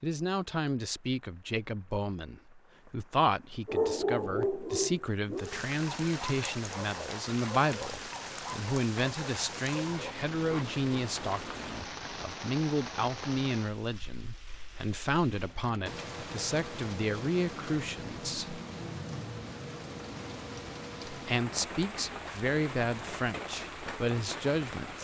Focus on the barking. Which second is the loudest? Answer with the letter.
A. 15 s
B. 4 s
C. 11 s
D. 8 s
B.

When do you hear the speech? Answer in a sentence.
You can hear the speech from 0.0 to 18.6 s and from 21.1 to 25.0 s.